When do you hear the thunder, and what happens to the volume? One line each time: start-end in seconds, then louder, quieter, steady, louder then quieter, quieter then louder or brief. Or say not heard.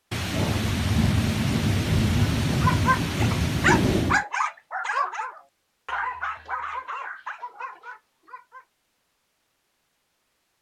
0.1-4.2 steady.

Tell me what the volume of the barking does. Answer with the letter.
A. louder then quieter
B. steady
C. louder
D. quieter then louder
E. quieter
E.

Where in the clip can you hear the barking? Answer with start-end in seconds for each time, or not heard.
2.2-8.7.